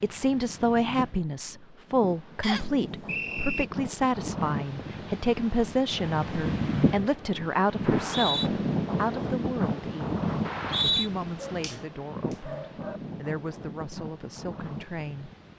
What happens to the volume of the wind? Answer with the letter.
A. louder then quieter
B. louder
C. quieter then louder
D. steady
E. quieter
A.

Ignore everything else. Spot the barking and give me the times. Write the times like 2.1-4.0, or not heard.
11.3-13.0.